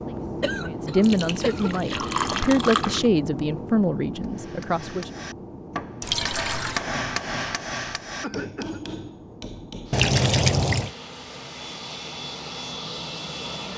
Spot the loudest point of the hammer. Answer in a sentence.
The loudest moment of the hammer is at 7 seconds.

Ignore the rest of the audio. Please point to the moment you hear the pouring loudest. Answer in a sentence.
The loudest moment of the pouring is at 10 seconds.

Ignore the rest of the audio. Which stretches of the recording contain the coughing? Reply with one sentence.
You can hear the coughing from 0.4 to 2.0 s and from 8.2 to 8.8 s.